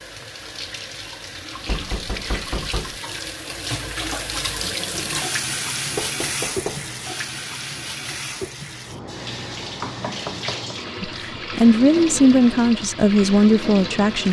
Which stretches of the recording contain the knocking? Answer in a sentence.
The knocking can be heard from 1.6 to 3.0 s, from 6.0 to 6.8 s and from 9.8 to 10.8 s.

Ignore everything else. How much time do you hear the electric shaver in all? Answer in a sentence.
You can't hear the electric shaver here.